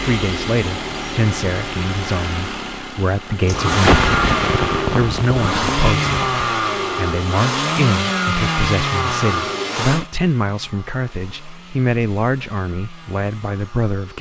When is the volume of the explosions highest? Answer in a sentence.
The volume of the explosions peaks at 4 seconds.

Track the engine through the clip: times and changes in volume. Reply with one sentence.
The engine can be heard from 0.0 to 14.1 s, getting louder then quieter.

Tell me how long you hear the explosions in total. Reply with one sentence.
The explosions can be heard for 3 seconds in total.